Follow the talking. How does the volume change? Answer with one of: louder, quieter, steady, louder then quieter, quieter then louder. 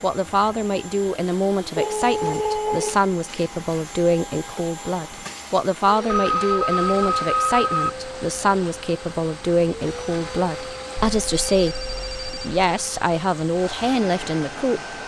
steady.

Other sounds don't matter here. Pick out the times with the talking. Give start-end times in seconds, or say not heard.
0.0-14.9.